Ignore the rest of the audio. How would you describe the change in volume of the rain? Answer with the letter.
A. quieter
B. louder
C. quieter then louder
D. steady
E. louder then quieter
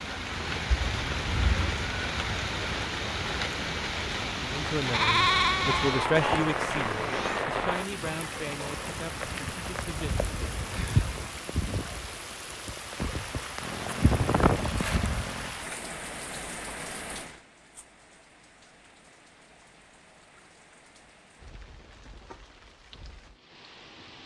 A.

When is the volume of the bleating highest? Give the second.
5 s.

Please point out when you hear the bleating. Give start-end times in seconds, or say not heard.
4.8-6.5.